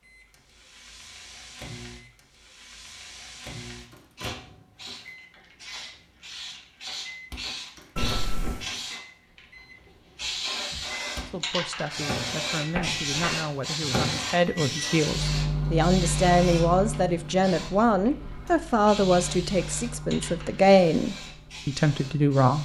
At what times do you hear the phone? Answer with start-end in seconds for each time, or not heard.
8.0-8.7, 12.8-13.4.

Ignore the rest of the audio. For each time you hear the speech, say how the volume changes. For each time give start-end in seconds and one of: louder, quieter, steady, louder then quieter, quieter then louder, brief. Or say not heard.
11.2-22.5 louder.